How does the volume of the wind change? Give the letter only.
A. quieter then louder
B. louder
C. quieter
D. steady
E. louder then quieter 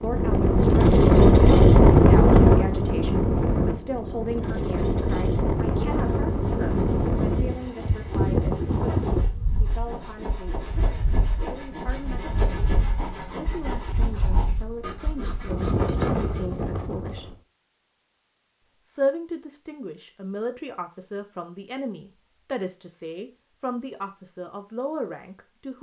A.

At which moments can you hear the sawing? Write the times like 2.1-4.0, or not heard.
5.8-16.6.